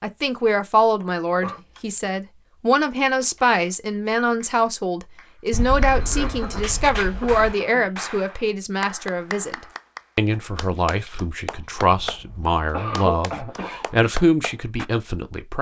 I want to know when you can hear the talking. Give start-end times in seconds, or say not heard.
0.0-9.6, 10.2-15.5.